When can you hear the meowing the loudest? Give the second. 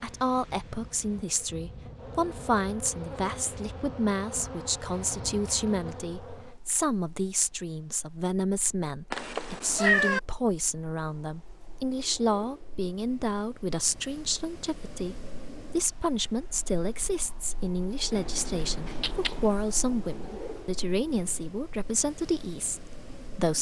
10 s.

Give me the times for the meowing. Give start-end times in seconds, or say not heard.
9.1-10.2, 18.1-19.6.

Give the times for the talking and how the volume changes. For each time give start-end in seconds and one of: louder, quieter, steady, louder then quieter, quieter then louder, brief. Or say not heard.
0.0-23.5 steady.